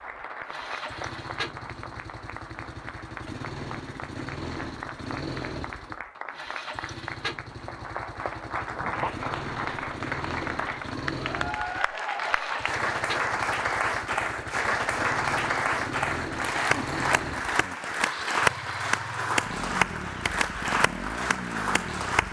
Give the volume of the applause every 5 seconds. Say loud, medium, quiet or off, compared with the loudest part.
quiet, medium, loud, loud, loud.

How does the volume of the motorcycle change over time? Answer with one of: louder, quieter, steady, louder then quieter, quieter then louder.
steady.